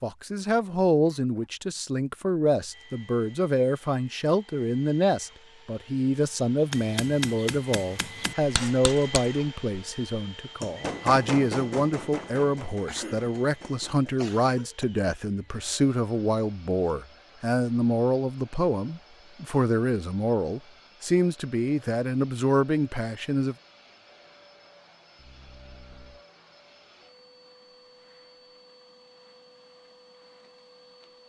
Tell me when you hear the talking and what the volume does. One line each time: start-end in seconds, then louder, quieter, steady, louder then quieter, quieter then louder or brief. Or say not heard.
0.0-23.6 steady.